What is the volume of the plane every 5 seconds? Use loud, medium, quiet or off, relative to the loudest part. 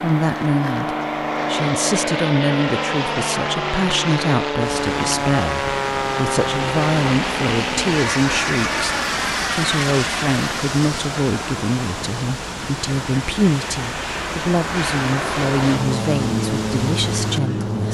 loud, loud, medium, loud.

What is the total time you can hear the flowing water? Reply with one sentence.
The flowing water can be heard for 13 seconds in total.